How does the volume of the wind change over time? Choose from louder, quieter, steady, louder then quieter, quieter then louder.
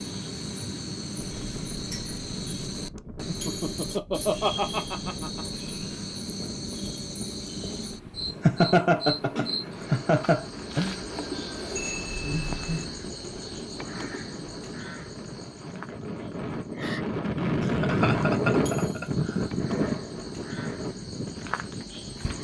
louder.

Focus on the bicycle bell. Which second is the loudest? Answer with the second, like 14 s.
12 s.